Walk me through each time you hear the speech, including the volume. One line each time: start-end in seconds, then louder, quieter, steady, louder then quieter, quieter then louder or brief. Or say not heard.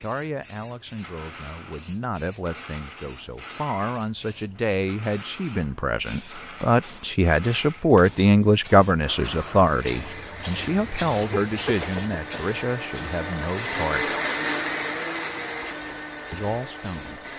0.0-14.2 louder then quieter
16.3-17.2 brief.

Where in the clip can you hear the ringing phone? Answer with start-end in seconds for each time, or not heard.
not heard.